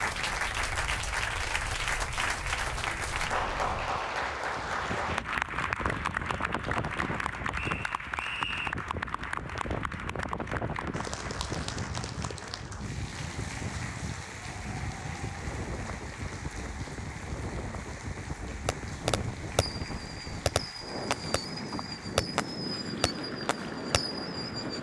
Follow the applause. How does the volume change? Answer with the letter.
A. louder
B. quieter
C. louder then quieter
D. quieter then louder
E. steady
B.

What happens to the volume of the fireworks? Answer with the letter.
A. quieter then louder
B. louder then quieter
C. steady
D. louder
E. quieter
E.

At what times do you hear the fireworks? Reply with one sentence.
You can hear the fireworks from 18.6 to 24.7 s.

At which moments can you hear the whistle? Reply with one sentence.
The whistle can be heard from 7.5 to 8.8 s.